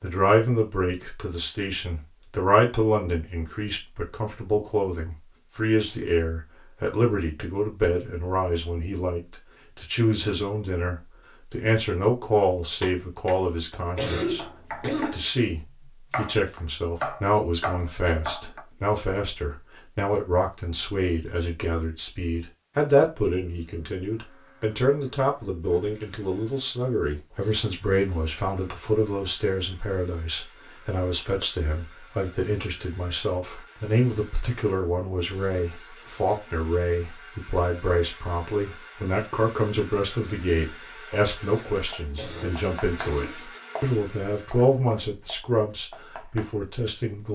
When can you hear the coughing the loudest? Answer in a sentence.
The loudest moment of the coughing is at 14 seconds.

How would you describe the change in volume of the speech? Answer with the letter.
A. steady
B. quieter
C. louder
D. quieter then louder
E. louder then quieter
A.